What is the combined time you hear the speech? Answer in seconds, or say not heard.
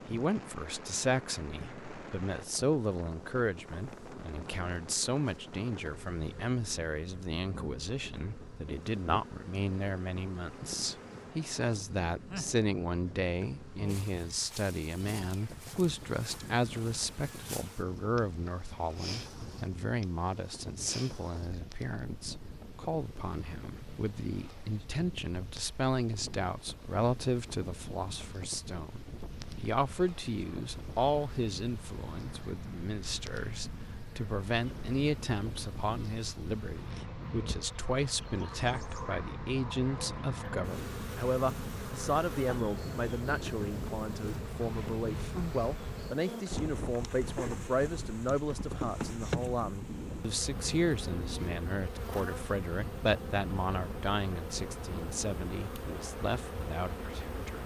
57 s.